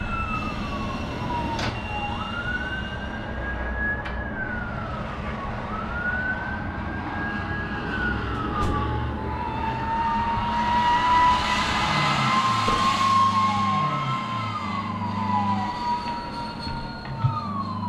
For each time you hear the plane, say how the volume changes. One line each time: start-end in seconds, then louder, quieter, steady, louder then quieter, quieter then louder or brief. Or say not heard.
0.0-17.8 louder then quieter.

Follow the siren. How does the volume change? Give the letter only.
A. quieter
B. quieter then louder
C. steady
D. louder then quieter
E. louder
C.